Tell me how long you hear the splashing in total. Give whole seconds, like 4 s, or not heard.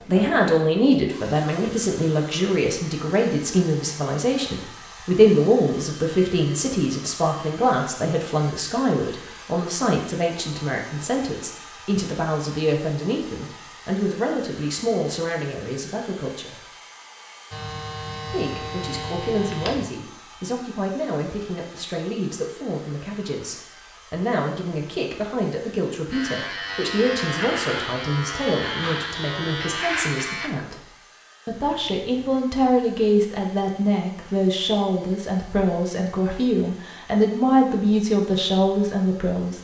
not heard.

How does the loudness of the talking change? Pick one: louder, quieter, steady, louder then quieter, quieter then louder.
quieter then louder.